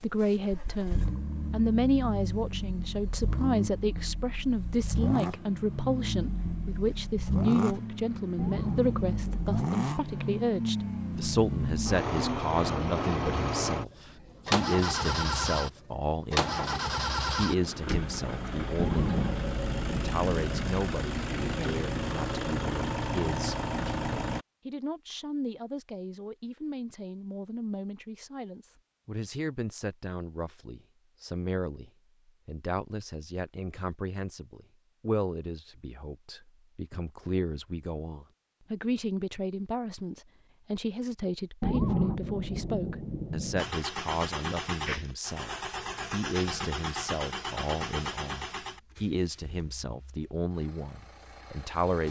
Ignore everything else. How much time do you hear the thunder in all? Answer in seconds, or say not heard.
6 s.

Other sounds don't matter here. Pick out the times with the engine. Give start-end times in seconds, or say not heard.
0.0-24.4, 43.5-52.0.